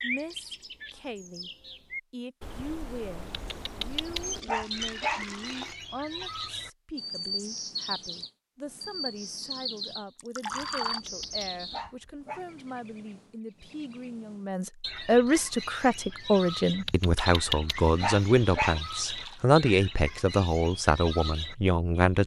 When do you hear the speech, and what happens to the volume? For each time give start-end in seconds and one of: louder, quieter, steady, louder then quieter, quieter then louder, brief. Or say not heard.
0.0-1.5 brief
2.1-22.2 louder.